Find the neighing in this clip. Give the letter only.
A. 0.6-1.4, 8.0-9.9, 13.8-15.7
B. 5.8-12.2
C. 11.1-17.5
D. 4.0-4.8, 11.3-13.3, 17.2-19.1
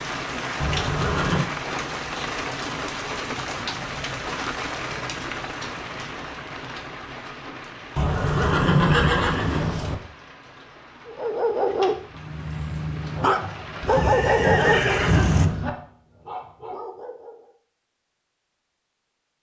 A.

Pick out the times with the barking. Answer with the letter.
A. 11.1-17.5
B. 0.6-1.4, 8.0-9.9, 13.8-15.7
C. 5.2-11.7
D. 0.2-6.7
A.